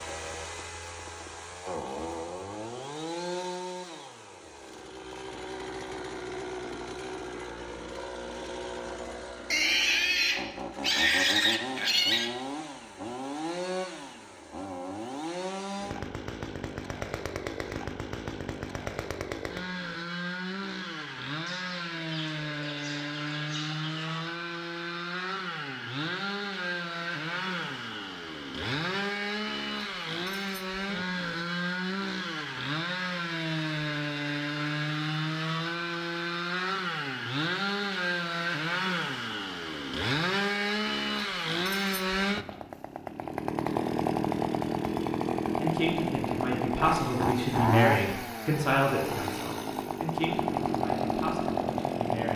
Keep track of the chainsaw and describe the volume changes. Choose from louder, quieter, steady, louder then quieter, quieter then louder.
louder.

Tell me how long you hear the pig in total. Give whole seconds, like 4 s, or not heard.
4 s.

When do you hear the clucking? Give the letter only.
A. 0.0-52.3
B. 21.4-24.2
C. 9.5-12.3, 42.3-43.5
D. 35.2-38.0
B.